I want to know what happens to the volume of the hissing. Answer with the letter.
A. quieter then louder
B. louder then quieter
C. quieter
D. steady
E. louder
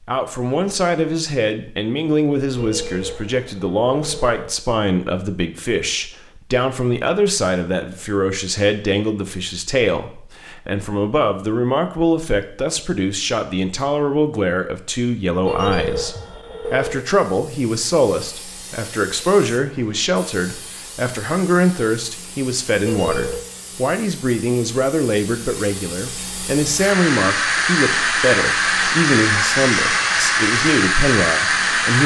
E.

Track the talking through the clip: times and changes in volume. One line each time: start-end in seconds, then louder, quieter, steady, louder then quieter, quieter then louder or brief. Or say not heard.
0.0-32.0 steady.